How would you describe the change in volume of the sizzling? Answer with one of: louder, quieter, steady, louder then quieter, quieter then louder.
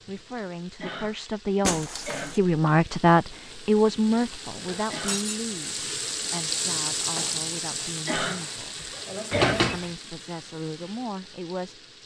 louder.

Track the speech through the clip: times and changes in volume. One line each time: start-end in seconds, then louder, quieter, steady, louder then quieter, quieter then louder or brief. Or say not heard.
0.1-8.8 louder then quieter
9.7-11.8 brief.